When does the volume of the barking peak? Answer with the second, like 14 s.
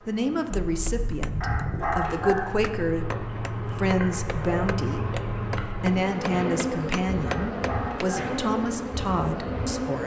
2 s.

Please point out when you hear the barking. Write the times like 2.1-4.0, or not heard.
1.4-2.6, 7.2-8.4.